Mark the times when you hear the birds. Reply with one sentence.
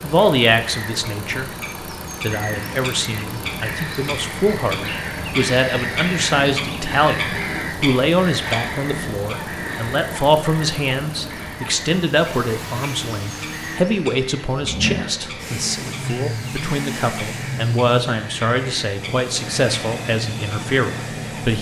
The birds can be heard from 0.0 to 21.5 s.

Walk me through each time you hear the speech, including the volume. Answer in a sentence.
You can hear the speech briefly from 0.0 to 1.5 s; and from 2.2 to 21.5 s, at a steady volume.